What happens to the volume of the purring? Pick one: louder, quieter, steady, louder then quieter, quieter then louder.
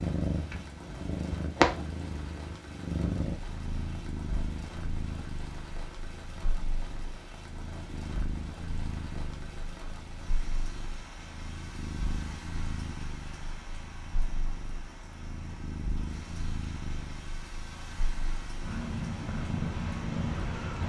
quieter then louder.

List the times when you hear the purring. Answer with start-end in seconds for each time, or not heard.
0.0-20.8.